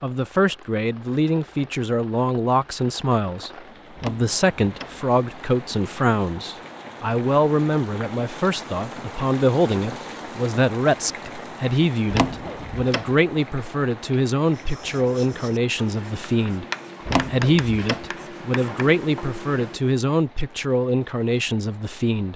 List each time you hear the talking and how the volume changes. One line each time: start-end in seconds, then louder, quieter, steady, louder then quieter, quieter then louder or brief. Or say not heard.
0.0-22.3 steady.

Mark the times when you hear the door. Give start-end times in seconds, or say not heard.
4.0-5.0, 12.1-13.1, 17.1-18.1.